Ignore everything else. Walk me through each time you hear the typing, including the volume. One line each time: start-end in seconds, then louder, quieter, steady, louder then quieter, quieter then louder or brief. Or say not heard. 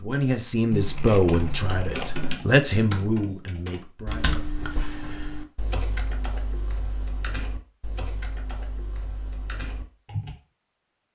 1.3-10.3 quieter.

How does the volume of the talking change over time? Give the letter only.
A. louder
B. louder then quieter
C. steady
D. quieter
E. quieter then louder
D.